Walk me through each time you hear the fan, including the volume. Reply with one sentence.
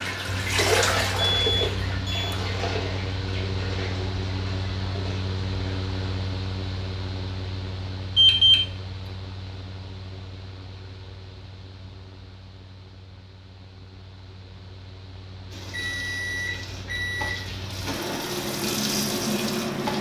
You can hear the fan from 0.0 to 19.9 s, getting quieter then louder.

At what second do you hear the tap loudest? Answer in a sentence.
The loudest moment of the tap is at 1 second.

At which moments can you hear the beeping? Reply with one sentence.
The beeping can be heard from 1.2 to 2.4 s, from 8.2 to 8.6 s and from 15.7 to 17.4 s.